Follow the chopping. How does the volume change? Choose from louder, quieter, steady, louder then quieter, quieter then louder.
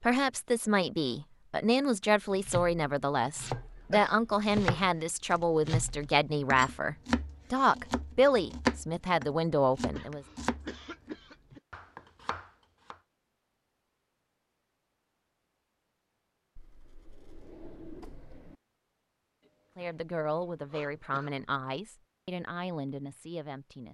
louder then quieter.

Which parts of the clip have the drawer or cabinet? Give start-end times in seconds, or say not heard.
4.3-4.7, 16.6-18.6.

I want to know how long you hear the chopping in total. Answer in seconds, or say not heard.
11 s.